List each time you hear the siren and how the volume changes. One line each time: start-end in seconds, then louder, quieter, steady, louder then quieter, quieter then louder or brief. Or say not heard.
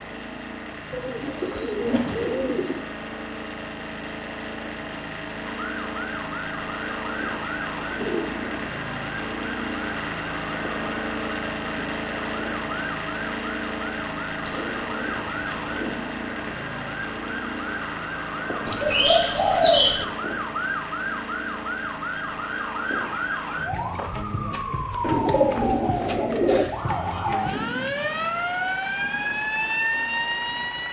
5.4-30.8 louder.